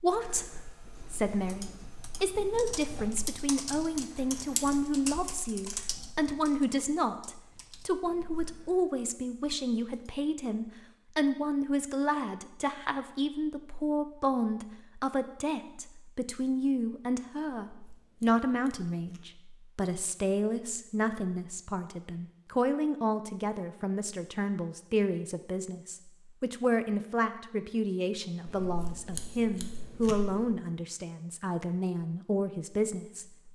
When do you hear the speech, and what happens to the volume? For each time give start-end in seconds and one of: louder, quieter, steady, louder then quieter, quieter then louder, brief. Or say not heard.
0.0-33.5 steady.